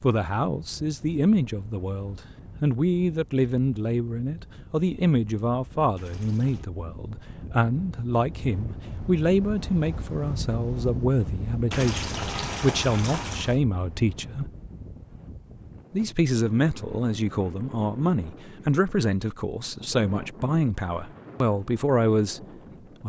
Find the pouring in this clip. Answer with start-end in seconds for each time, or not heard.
6.0-6.7, 11.7-13.6.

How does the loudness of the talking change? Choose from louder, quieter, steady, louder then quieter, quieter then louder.
steady.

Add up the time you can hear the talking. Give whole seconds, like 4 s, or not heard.
21 s.